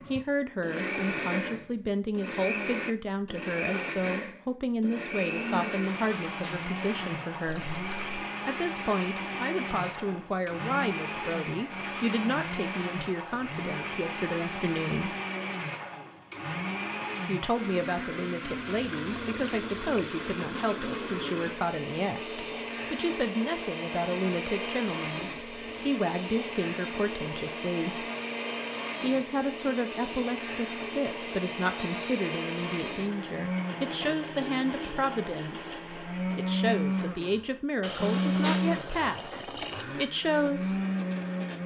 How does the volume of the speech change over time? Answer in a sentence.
The loudness of the speech stays about the same.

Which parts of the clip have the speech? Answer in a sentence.
You can hear the speech from 0.1 to 7.7 s, from 8.4 to 15.2 s, from 17.2 to 28.1 s and from 29.0 to 40.8 s.